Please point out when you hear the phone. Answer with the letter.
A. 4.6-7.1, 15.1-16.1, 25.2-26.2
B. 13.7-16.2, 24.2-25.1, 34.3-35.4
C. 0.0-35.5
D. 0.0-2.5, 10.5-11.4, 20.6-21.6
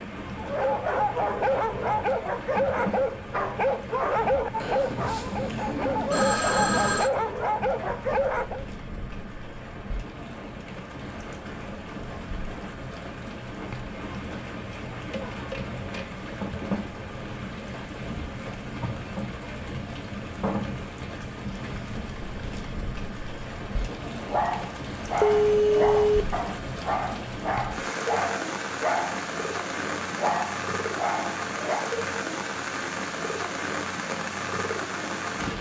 A.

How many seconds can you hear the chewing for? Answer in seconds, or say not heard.
not heard.